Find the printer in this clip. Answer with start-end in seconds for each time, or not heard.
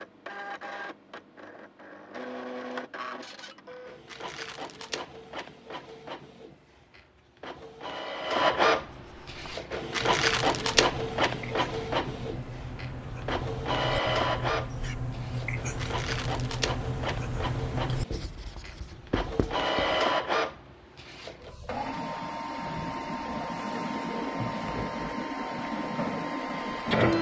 0.0-27.1.